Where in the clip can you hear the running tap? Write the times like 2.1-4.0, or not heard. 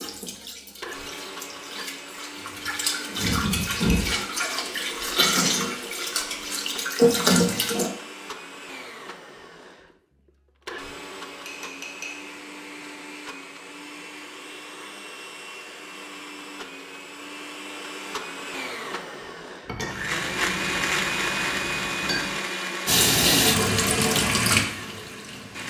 0.0-7.9, 22.9-25.6.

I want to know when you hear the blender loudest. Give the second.
21 s.